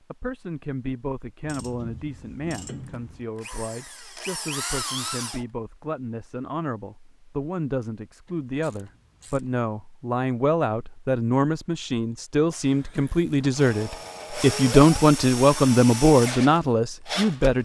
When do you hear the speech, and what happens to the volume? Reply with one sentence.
You can hear the speech from 0.0 to 17.6 s, getting louder.